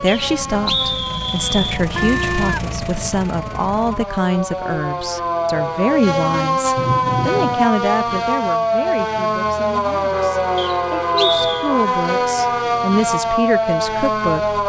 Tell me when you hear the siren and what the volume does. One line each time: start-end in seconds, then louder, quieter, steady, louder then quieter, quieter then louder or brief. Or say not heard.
0.0-14.6 louder.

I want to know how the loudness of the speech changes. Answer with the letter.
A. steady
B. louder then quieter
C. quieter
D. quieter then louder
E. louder
D.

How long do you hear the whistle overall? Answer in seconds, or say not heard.
3 s.